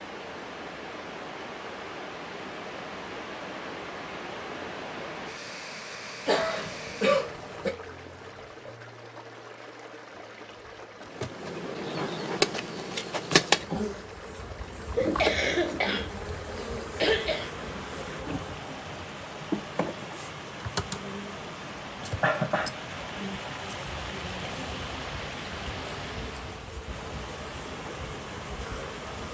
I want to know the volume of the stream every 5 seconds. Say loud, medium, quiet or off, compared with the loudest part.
loud, loud, medium, loud, loud, loud.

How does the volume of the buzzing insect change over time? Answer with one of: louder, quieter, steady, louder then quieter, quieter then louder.
quieter.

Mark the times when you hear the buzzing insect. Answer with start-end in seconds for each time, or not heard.
11.0-29.2.